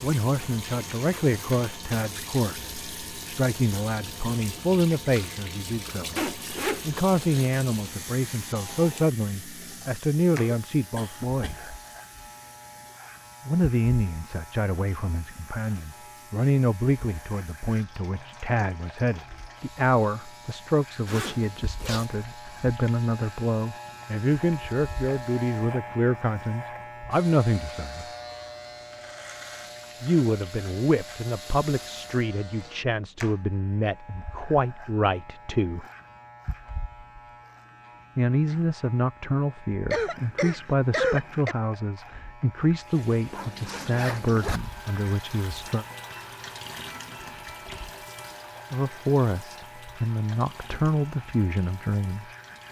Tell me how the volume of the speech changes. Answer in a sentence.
The volume of the speech stays about the same.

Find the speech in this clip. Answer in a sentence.
The speech can be heard from 0.0 to 11.8 s, from 13.4 to 28.1 s, from 30.0 to 35.9 s, from 38.1 to 45.9 s and from 48.7 to 52.3 s.